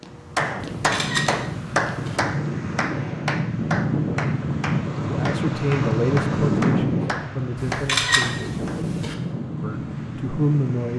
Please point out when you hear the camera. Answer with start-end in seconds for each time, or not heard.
0.6-2.2, 7.5-9.2.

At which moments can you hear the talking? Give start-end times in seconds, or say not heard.
5.0-8.6, 9.6-10.9.